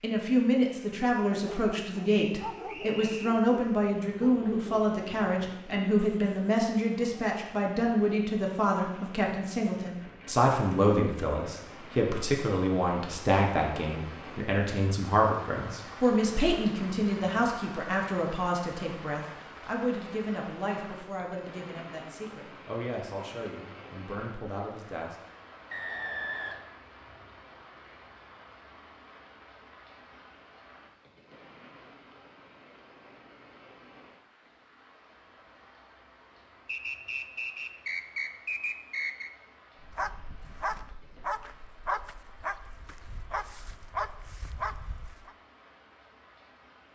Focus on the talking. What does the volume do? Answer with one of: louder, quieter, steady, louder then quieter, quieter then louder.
quieter.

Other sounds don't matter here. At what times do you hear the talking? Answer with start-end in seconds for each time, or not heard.
0.0-25.1.